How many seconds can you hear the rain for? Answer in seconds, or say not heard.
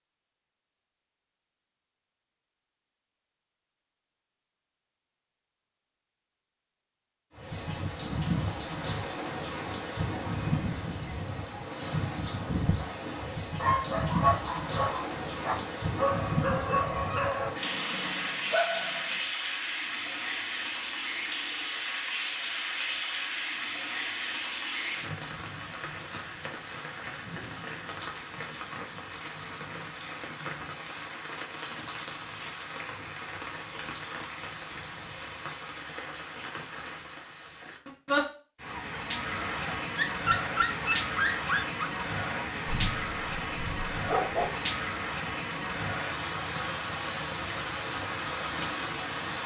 42 s.